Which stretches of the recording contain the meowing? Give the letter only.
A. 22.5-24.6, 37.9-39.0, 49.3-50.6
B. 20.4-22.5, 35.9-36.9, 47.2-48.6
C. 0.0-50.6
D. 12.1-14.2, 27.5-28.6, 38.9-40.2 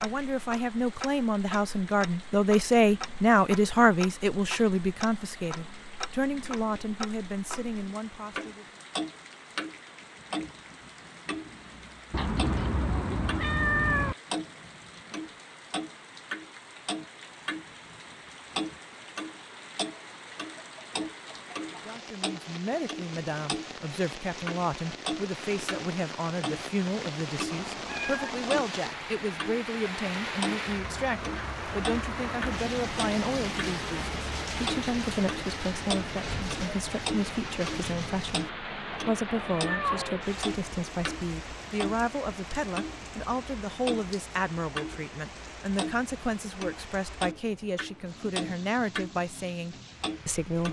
D.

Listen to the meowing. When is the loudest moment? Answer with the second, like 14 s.
14 s.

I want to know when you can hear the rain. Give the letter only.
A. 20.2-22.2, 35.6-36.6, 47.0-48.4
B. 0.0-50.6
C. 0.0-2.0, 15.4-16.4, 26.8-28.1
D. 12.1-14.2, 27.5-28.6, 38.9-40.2
B.